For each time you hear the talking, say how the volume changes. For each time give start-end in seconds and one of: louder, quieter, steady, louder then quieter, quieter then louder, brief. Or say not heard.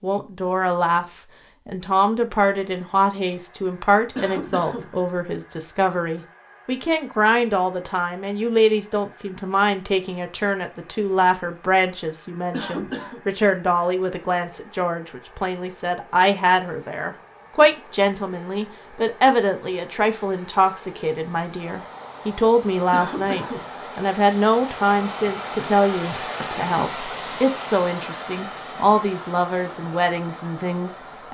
0.0-31.3 steady.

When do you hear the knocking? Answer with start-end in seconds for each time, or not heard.
not heard.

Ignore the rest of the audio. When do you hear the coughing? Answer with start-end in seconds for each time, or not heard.
4.2-4.9, 12.5-13.2, 22.9-23.6.